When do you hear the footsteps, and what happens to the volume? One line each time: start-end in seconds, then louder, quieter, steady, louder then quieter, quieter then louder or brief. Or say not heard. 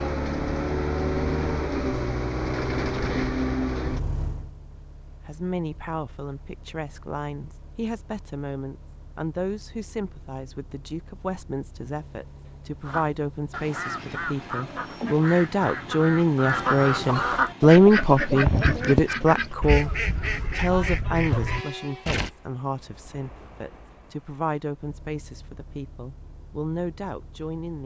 not heard.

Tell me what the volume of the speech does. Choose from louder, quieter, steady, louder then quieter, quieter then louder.
louder then quieter.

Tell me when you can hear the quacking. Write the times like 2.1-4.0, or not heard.
12.8-22.3.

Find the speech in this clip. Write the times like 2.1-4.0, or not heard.
5.2-27.8.